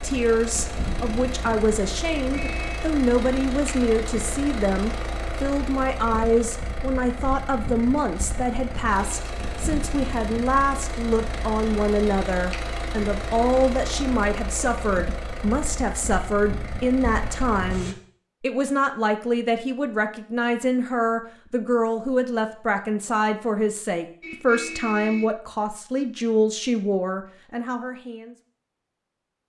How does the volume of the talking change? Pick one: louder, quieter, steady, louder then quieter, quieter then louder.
steady.